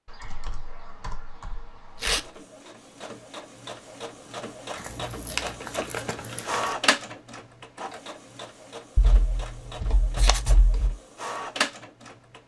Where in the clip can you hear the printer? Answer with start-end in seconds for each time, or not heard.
2.0-12.4.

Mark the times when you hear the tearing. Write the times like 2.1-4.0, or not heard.
1.9-2.4, 4.8-6.7, 10.2-10.6.